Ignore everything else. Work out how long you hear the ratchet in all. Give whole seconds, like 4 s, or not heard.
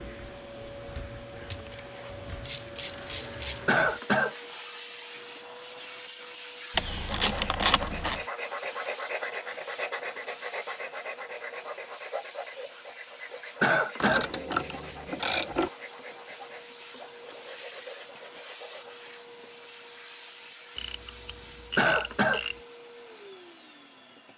7 s.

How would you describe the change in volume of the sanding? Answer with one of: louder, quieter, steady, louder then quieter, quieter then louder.
quieter.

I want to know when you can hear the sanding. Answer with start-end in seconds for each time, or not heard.
6.9-19.0.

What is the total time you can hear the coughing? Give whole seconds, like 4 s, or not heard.
2 s.